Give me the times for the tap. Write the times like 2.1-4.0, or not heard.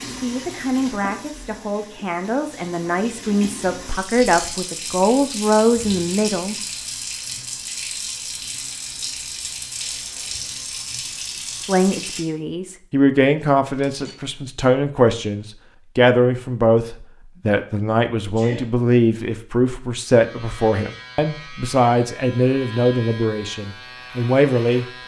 0.0-12.2.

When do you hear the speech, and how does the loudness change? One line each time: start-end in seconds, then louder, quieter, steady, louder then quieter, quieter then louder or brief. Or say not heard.
0.1-6.5 louder
11.6-24.9 steady.